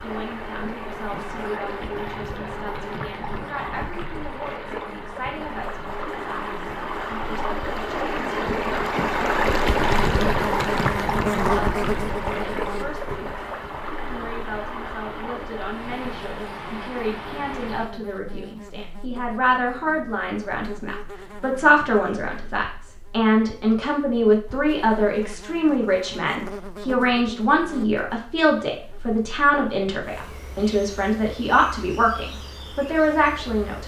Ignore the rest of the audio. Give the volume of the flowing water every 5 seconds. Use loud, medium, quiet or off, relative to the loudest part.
medium, loud, loud, medium, off, off, off.